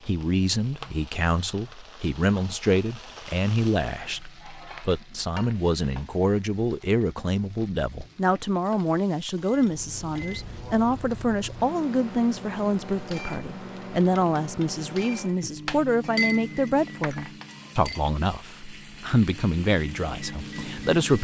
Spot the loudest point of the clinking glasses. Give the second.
16 s.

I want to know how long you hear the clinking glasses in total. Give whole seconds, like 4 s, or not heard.
2 s.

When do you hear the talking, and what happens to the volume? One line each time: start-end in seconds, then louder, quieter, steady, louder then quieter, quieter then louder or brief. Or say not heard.
0.1-21.1 steady.